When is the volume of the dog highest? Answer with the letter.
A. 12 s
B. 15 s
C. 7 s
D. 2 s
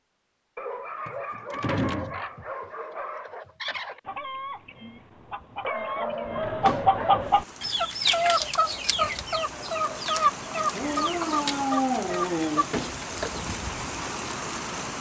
A.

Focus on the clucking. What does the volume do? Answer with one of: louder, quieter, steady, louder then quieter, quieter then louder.
louder then quieter.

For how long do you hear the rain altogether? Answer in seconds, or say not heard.
8 s.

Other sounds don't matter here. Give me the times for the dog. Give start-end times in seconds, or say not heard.
0.6-3.5, 5.6-7.3, 10.7-12.7.